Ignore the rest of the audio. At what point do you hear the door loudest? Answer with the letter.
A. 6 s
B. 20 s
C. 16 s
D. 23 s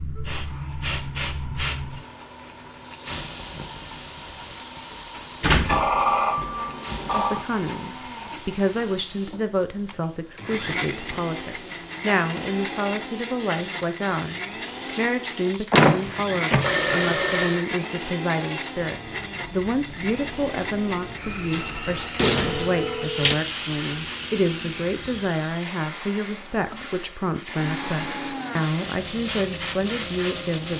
C.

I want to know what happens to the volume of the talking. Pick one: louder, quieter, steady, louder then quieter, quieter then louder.
steady.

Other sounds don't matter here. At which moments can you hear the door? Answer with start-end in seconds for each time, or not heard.
5.4-7.2, 15.7-16.8, 21.5-23.4.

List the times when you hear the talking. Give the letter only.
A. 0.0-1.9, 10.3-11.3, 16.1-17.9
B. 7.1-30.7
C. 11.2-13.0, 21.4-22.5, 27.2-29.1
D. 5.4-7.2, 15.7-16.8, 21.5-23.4
B.